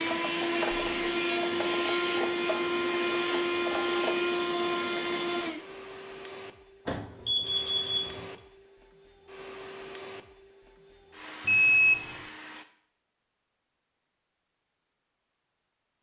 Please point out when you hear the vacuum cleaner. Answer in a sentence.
You can hear the vacuum cleaner from 0.0 to 12.7 s.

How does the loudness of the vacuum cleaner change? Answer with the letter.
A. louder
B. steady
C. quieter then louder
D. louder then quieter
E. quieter
E.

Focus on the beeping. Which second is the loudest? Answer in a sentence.
The volume of the beeping peaks at 12 seconds.